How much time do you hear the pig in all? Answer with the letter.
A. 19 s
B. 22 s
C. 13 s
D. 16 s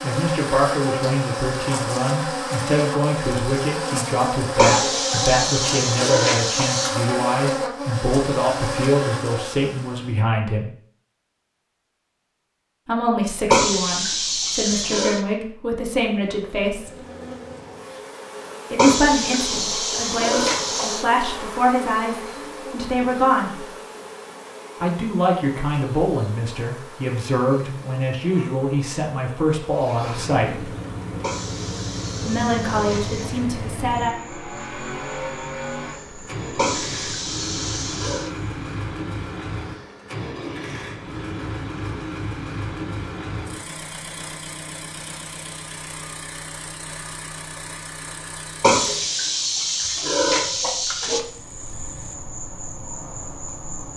C.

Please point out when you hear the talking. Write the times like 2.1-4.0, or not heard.
0.0-10.7, 12.8-16.9, 18.7-23.6, 24.8-30.7, 32.2-34.1.